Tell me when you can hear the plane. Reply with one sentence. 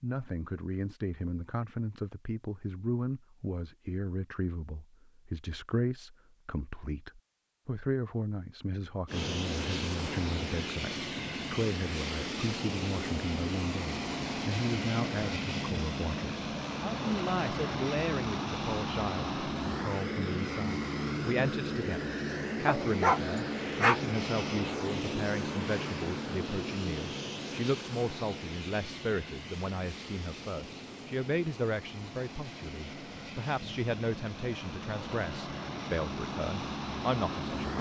You can hear the plane from 9.1 to 37.7 s.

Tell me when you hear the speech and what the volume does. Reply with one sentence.
The speech can be heard from 0.0 to 37.7 s, at a steady volume.